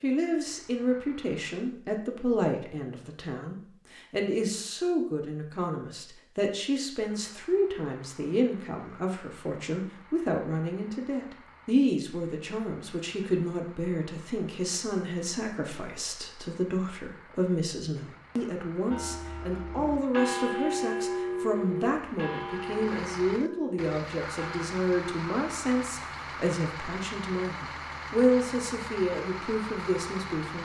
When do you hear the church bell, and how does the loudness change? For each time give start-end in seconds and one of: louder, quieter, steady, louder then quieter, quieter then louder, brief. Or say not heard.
18.9-24.6 louder then quieter.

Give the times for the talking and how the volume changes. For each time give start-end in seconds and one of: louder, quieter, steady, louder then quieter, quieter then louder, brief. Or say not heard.
0.0-30.6 steady.